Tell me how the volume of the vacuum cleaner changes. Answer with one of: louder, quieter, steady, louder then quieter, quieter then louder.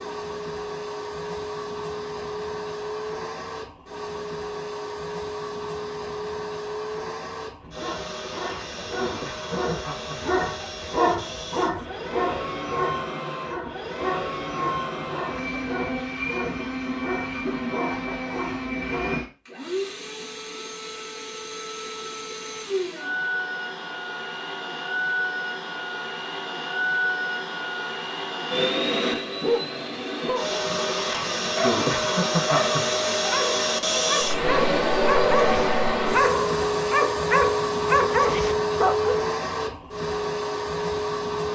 louder.